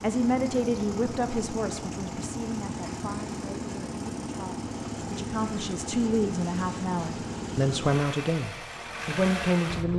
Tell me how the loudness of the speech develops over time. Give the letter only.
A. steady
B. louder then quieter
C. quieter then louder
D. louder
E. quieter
C.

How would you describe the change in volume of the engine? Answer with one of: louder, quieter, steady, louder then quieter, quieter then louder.
steady.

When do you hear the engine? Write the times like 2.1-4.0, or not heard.
0.0-9.9.